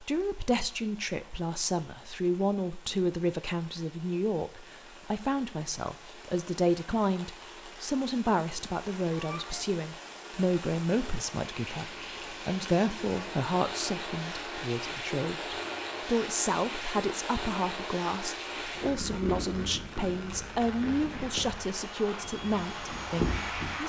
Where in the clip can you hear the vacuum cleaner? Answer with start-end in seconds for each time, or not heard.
20.6-23.8.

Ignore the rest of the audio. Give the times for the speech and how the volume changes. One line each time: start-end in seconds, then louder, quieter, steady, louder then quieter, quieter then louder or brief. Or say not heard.
0.0-23.8 steady.